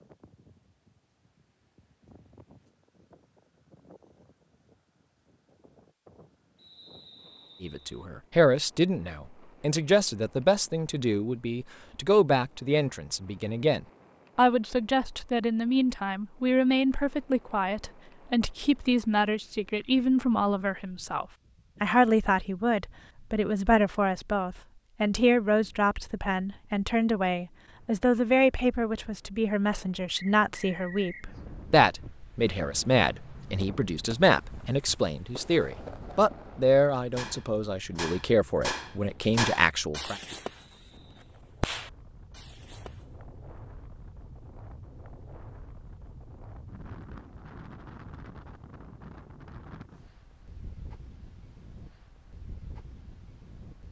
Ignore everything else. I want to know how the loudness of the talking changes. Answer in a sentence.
The volume of the talking stays about the same.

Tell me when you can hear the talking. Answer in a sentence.
You can hear the talking from 7.6 to 40.2 s.